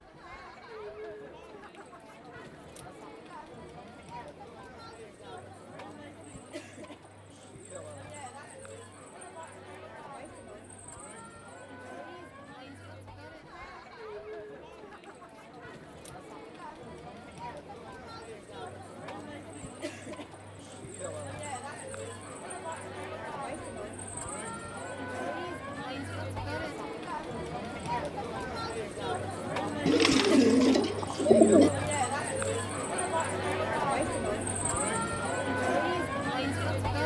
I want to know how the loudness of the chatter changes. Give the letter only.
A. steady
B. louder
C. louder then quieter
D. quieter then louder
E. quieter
B.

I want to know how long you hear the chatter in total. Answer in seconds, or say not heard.
37 s.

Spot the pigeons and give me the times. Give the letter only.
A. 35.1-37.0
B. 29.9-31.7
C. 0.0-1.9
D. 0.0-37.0
B.